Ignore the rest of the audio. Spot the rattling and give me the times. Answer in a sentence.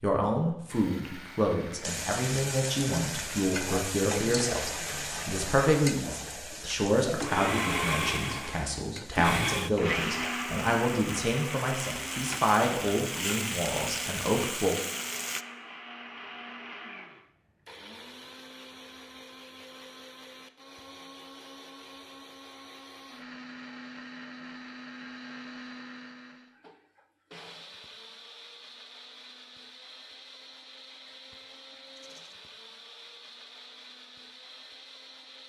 You can hear the rattling from 31.9 to 32.4 s.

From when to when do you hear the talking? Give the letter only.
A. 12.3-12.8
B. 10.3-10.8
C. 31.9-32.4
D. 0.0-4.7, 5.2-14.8
D.